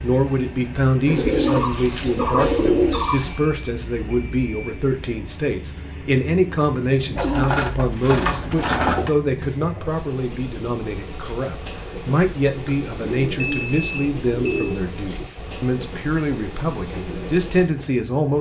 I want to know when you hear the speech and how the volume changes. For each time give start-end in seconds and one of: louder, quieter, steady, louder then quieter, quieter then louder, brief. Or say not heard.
0.0-18.3 steady.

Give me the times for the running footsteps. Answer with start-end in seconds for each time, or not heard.
not heard.